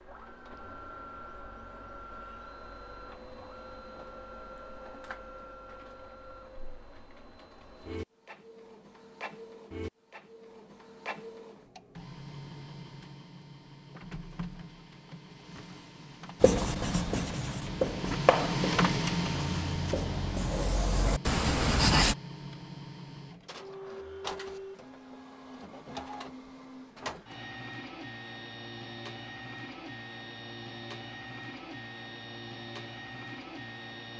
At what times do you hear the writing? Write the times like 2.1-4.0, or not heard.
16.4-22.1.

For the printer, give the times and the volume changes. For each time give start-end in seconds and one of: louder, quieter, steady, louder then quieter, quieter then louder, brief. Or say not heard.
0.0-34.1 louder then quieter.